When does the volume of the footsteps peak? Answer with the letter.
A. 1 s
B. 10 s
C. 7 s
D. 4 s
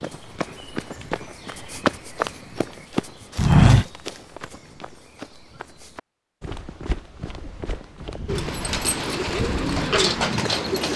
D.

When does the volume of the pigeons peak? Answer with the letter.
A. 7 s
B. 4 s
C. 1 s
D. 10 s
D.